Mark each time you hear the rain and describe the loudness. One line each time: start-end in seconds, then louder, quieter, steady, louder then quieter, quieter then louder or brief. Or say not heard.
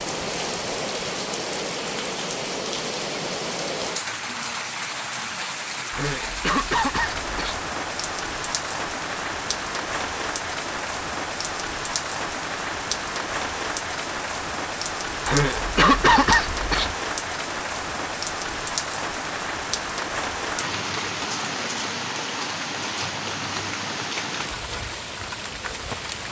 0.0-26.2 steady.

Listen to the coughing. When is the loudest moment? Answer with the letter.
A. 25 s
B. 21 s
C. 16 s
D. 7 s
C.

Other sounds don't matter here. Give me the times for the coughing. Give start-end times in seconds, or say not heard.
5.9-7.6, 15.2-16.9.